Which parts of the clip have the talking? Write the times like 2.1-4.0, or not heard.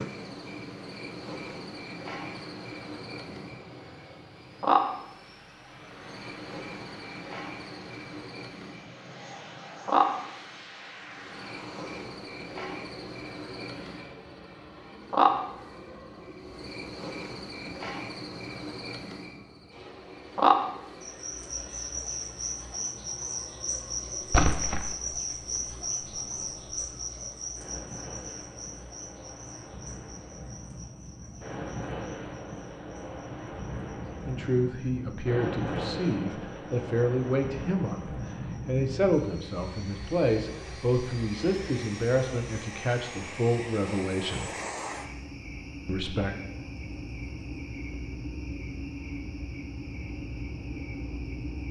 34.2-44.5, 45.9-46.3.